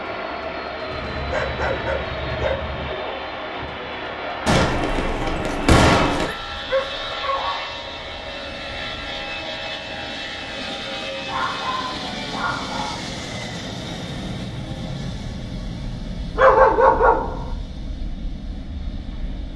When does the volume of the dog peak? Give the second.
17 s.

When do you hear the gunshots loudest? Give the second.
6 s.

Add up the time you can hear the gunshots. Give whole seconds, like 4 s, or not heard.
2 s.